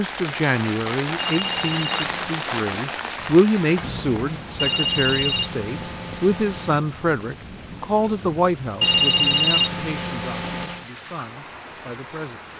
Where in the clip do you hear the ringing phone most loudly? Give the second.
9 s.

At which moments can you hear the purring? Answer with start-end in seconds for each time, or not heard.
not heard.